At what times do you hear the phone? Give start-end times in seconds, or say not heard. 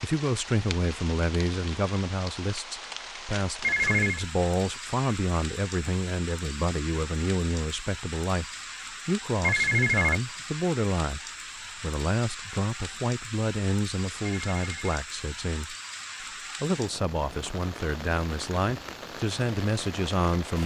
3.6-4.2, 9.4-10.2, 14.4-15.0.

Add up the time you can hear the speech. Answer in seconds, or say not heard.
19 s.